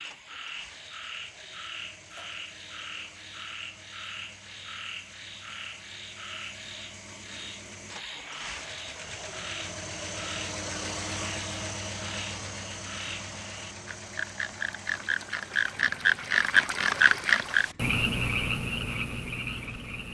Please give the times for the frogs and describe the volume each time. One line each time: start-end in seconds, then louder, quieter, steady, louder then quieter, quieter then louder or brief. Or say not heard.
0.0-20.0 louder.